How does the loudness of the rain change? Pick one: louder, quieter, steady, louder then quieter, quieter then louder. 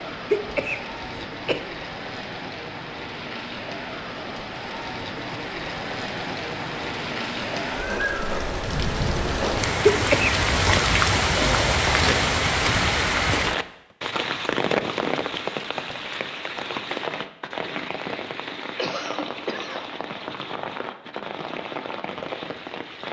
louder then quieter.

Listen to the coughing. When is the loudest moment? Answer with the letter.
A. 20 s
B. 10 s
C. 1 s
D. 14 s
B.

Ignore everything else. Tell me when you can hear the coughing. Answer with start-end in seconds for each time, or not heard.
0.3-1.6, 9.8-10.3, 18.8-19.9.